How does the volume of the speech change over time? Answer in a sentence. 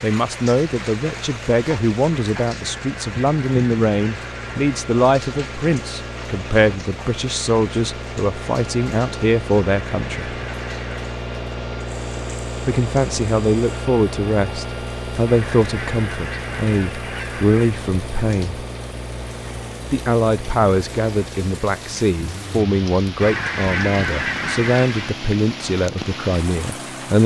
The loudness of the speech stays about the same.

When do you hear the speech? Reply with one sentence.
The speech can be heard from 0.0 to 10.3 s, from 12.7 to 18.6 s and from 19.9 to 27.2 s.